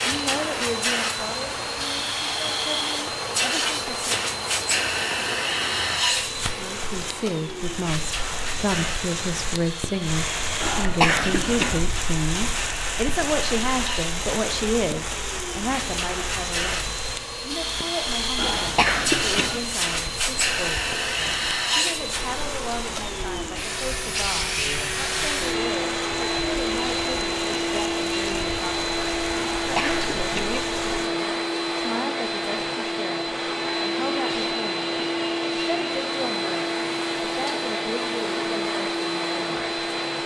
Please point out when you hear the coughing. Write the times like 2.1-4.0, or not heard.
10.6-11.8, 18.4-19.6, 29.6-30.6.